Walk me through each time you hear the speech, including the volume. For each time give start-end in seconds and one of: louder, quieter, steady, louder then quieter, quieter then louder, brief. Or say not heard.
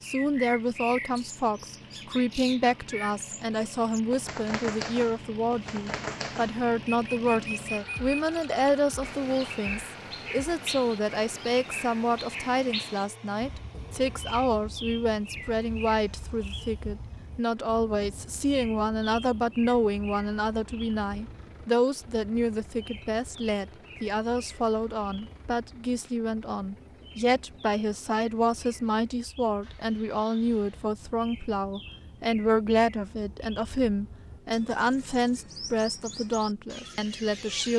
0.0-37.7 steady.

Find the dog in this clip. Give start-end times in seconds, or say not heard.
not heard.